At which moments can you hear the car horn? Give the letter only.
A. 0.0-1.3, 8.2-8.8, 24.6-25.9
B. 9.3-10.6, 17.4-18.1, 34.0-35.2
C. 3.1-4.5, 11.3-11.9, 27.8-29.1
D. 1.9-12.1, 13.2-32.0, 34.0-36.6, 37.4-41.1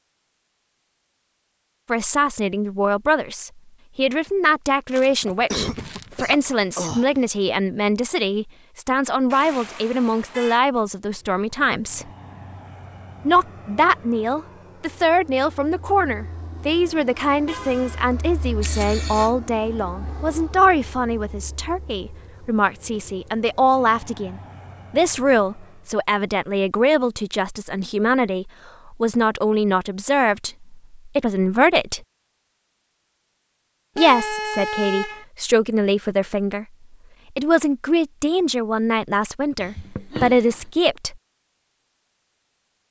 B.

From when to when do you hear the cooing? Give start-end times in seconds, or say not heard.
not heard.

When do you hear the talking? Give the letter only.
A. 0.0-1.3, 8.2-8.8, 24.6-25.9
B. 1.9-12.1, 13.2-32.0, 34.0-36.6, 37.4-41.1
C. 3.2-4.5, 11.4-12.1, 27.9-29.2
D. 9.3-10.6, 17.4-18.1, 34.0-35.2
B.